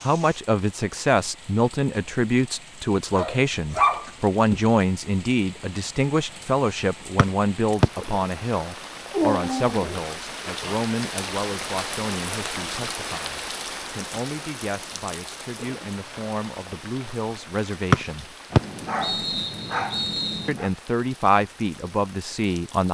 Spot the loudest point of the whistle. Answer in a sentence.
The loudest moment of the whistle is at 18 seconds.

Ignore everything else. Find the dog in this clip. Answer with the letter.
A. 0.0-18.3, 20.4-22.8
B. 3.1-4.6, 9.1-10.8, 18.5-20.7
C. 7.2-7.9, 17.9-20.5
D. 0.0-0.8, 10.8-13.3
B.